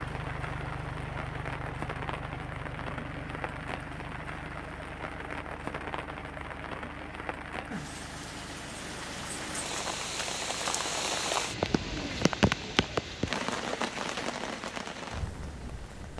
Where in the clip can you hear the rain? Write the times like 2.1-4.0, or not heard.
0.0-16.1.